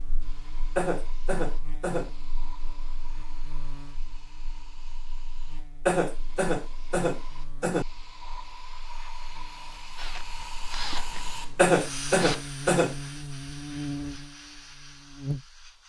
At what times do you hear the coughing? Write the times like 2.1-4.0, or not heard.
0.8-2.1, 5.8-7.8, 11.6-12.9.